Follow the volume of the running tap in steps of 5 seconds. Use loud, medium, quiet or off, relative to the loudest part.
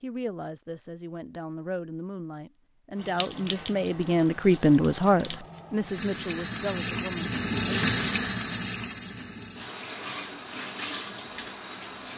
quiet, loud, medium.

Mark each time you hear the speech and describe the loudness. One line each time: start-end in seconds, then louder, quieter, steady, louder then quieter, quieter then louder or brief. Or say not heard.
0.0-7.8 louder then quieter.